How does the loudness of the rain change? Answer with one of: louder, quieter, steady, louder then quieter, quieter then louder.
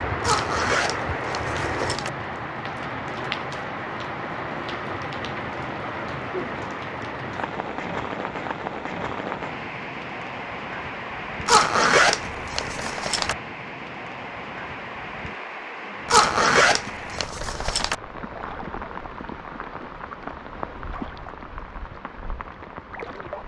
quieter.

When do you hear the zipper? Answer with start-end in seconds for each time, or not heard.
0.2-2.1, 11.4-13.3, 16.1-17.9.